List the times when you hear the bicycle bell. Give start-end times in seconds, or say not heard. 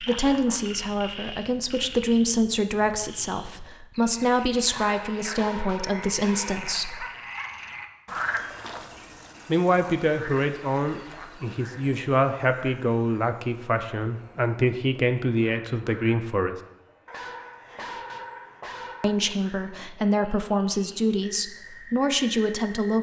not heard.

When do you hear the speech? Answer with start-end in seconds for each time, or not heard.
0.0-7.0, 9.4-16.6, 19.0-22.9.